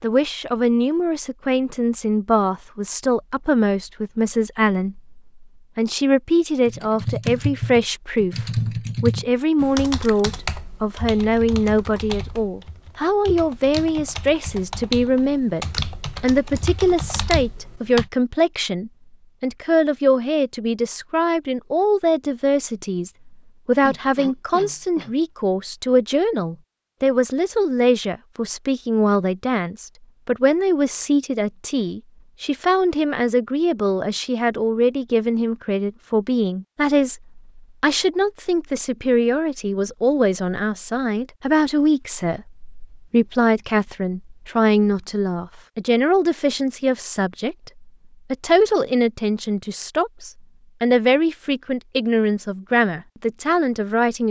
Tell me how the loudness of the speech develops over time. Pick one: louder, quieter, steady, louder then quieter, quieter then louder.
steady.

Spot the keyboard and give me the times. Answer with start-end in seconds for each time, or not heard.
6.7-18.1.